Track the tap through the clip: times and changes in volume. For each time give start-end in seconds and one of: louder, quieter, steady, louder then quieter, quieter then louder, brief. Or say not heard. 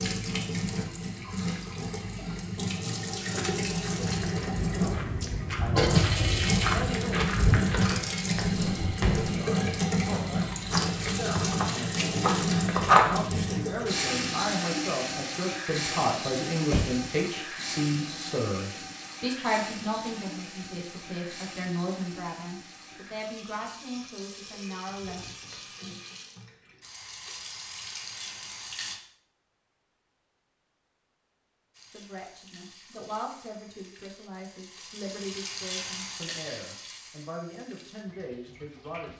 0.0-29.0 quieter
31.7-39.1 louder then quieter.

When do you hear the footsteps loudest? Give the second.
13 s.